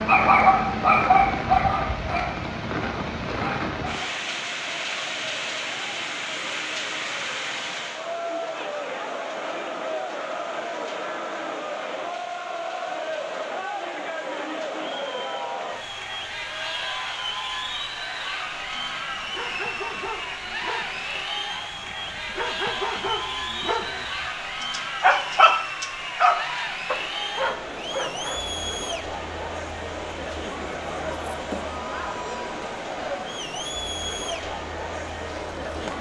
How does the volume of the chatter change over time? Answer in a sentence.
The loudness of the chatter stays about the same.